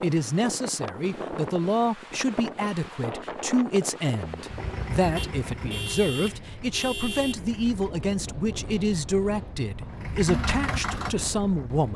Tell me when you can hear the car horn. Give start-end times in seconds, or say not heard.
5.2-7.4.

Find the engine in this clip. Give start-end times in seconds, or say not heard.
4.4-8.0, 9.9-11.8.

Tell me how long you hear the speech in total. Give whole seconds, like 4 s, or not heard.
12 s.